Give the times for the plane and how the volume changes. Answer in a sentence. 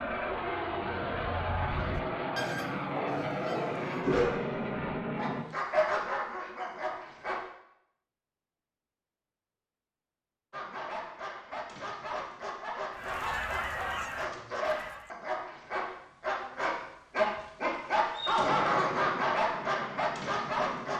The plane can be heard from 0.0 to 5.5 s, at a steady volume; and briefly from 18.4 to 20.9 s.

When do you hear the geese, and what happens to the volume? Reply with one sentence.
You can hear the geese from 0.0 to 4.2 s, getting louder then quieter; and briefly from 12.9 to 15.2 s.